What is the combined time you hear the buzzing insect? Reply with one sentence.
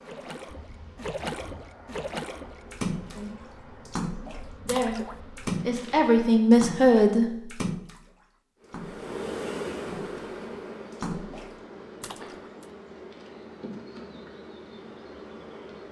You can hear the buzzing insect for 14 seconds altogether.